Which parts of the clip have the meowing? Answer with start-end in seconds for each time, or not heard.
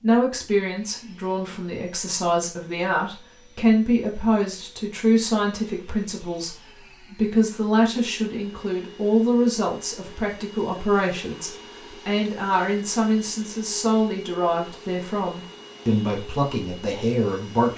not heard.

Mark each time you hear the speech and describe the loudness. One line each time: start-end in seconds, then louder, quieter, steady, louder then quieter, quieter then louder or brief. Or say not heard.
0.0-17.7 steady.